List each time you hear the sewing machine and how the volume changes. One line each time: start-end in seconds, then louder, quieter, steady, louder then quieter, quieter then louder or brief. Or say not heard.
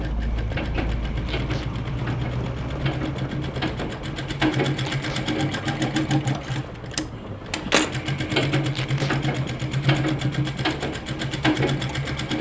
0.0-12.3 louder.